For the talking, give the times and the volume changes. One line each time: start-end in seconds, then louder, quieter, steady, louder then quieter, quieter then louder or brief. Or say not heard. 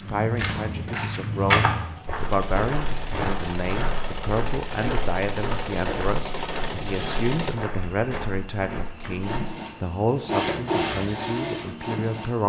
0.0-12.4 steady.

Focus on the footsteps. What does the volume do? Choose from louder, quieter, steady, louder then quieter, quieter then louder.
quieter.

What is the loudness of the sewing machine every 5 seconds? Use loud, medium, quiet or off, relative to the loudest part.
medium, medium, loud.